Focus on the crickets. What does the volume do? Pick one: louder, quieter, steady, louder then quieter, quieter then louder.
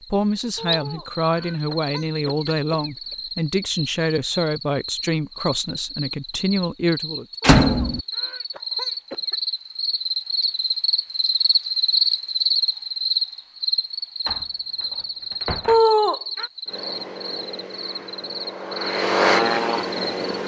louder then quieter.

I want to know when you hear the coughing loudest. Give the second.
16 s.